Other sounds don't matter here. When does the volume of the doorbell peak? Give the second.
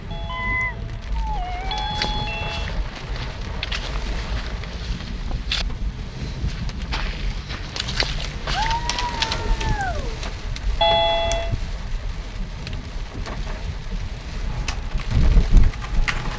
11 s.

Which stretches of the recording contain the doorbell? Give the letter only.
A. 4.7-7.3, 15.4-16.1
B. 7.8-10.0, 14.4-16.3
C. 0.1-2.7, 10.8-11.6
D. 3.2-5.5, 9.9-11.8
C.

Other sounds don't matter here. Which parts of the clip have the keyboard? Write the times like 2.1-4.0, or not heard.
7.8-10.0, 14.4-16.3.